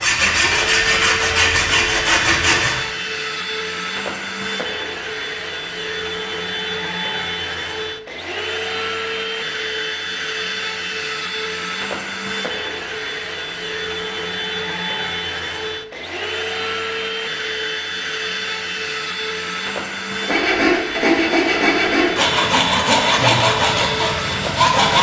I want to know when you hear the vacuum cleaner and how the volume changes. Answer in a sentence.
You can hear the vacuum cleaner from 0.2 to 24.9 s, at a steady volume.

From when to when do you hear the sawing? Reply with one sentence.
The sawing can be heard from 0.0 to 2.8 s and from 20.2 to 24.9 s.